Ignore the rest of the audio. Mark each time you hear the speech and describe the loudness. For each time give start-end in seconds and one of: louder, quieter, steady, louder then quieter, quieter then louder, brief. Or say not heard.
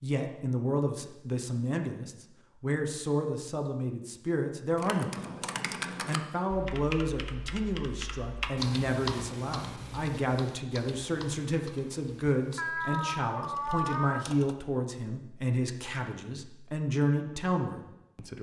0.0-18.3 steady.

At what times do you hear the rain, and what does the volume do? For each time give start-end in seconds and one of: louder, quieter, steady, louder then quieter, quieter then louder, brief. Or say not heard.
not heard.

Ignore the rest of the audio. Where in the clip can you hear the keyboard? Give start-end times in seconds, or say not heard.
4.8-14.6.